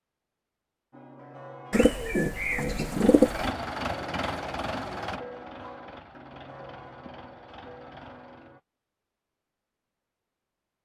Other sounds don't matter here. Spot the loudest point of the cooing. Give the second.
3 s.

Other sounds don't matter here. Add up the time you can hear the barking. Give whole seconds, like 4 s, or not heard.
not heard.